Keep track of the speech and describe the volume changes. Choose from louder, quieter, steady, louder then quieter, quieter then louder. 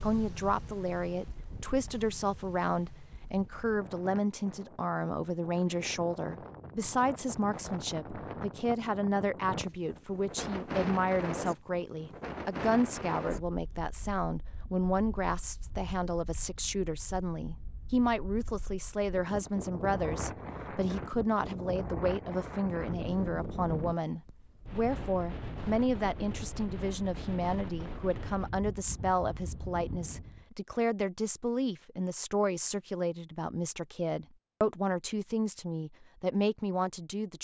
steady.